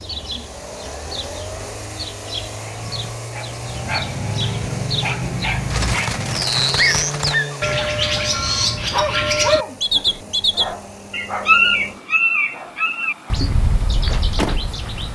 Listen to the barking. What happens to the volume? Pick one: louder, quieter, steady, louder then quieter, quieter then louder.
louder then quieter.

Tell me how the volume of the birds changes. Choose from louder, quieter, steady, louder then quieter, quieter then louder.
louder then quieter.